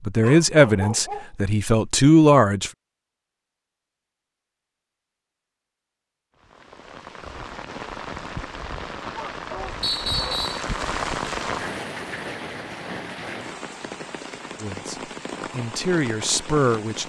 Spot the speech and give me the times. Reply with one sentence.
You can hear the speech from 0.0 to 2.7 s and from 14.6 to 17.0 s.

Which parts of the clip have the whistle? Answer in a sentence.
The whistle can be heard from 9.8 to 10.7 s.